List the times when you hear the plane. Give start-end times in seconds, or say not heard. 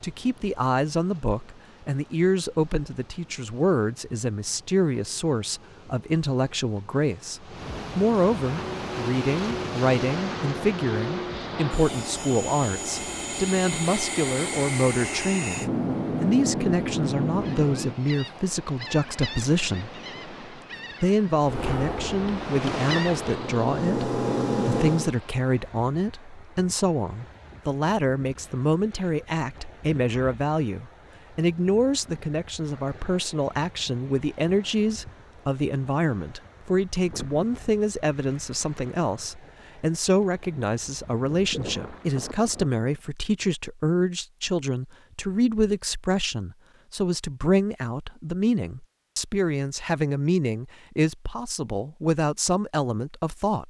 8.4-18.0, 21.4-25.1.